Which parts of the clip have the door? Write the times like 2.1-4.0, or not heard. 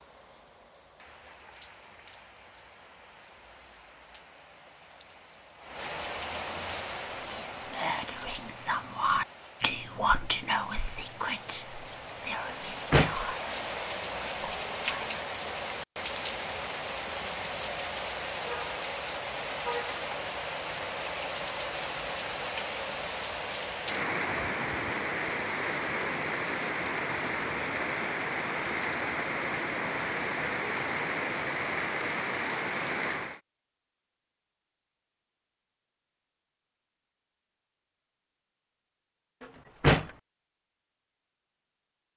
12.5-13.2, 39.4-40.1.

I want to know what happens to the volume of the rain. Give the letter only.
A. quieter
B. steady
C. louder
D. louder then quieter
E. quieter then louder
C.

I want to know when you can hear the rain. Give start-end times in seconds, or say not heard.
0.0-33.4.